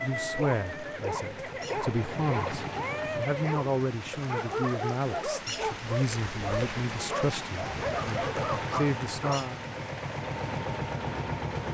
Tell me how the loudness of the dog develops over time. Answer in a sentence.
The volume of the dog stays about the same.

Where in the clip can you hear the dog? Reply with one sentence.
You can hear the dog from 0.0 to 9.4 s.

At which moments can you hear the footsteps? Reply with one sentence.
The footsteps can't be heard in this clip.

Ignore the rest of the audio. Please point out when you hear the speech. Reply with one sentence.
The speech can be heard from 0.0 to 9.7 s.